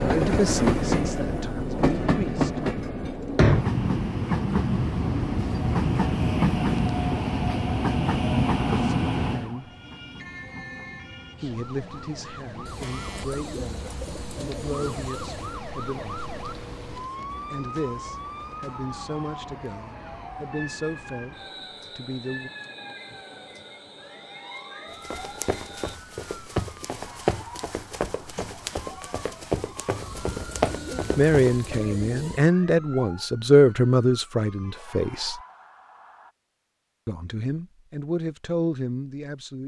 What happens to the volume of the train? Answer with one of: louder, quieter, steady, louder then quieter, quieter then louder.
quieter.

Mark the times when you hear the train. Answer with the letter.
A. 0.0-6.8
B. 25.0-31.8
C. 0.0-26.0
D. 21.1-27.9
C.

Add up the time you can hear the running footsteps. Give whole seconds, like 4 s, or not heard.
7 s.